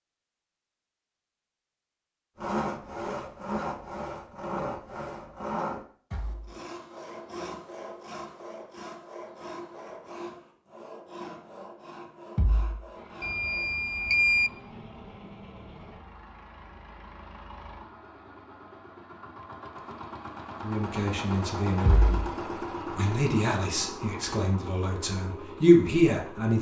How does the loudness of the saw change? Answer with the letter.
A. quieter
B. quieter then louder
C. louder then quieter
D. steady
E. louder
A.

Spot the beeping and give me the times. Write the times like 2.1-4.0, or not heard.
13.2-14.5.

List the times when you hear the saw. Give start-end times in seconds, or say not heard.
2.4-13.7.